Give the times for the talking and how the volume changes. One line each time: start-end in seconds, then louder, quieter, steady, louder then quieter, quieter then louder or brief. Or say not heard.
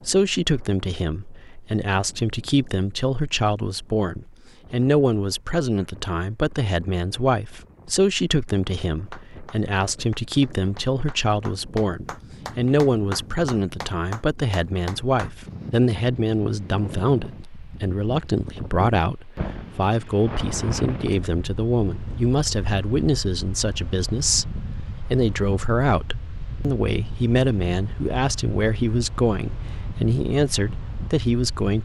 0.1-31.7 steady.